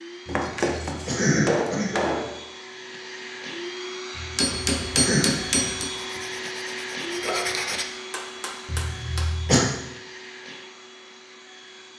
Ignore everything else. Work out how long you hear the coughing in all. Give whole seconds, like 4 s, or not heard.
4 s.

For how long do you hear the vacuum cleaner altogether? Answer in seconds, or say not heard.
12 s.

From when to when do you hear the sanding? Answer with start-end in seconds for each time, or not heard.
6.0-7.8.